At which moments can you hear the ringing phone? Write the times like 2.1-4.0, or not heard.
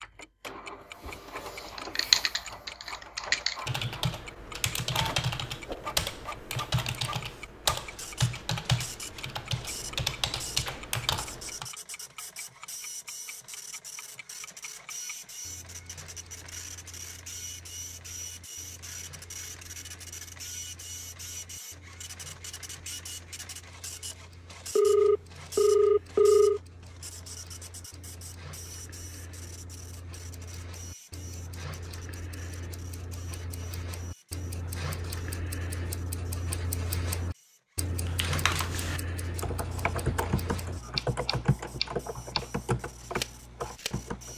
24.8-26.6.